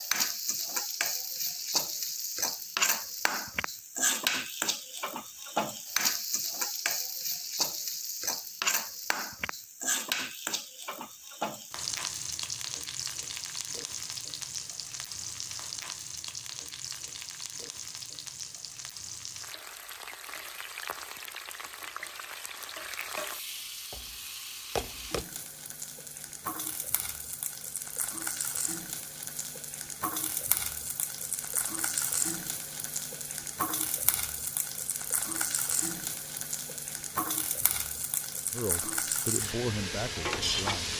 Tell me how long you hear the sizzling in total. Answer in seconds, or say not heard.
41 s.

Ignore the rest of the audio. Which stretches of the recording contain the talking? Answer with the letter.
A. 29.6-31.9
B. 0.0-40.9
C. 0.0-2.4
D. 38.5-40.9
D.